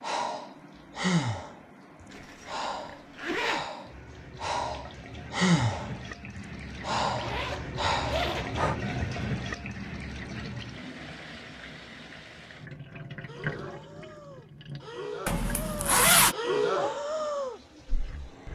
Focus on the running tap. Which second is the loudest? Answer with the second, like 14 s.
9 s.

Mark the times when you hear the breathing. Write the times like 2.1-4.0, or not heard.
0.0-8.8, 13.2-18.5.